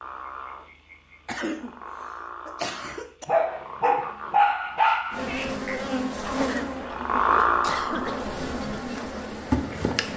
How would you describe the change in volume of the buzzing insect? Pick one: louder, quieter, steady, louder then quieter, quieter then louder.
quieter then louder.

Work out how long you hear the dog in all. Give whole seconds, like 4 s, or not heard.
2 s.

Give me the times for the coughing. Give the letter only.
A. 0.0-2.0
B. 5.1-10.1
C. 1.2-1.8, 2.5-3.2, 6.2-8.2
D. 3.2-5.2
C.